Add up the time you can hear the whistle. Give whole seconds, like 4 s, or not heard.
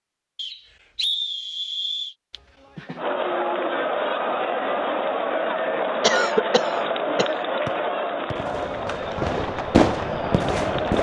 2 s.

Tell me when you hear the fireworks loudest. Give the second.
10 s.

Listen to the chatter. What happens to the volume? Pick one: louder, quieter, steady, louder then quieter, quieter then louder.
quieter.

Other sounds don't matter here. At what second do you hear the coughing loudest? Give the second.
6 s.